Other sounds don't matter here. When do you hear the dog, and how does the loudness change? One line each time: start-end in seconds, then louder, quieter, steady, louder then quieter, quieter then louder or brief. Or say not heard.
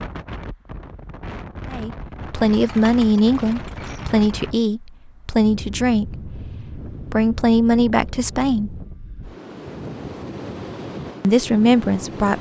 not heard.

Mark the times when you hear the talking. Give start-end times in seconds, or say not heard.
1.7-8.7, 11.2-12.3.